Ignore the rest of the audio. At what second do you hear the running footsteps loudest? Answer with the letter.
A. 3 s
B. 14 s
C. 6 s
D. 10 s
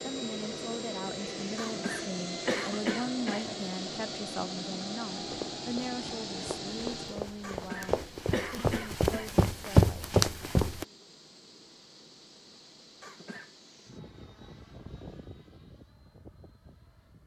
D.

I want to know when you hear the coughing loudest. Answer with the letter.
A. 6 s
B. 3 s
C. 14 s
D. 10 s
B.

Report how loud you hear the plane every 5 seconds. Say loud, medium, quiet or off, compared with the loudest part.
loud, loud, quiet, quiet.